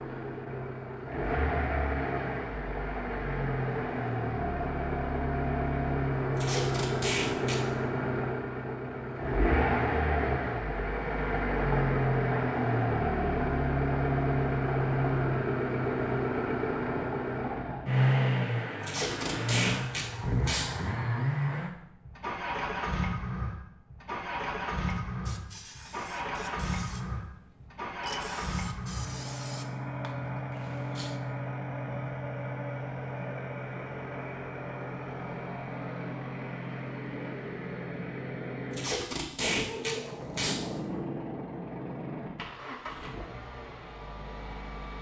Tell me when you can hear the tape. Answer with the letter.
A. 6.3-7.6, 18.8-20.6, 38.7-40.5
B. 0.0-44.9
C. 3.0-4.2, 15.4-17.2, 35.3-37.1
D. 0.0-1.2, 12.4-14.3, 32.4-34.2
A.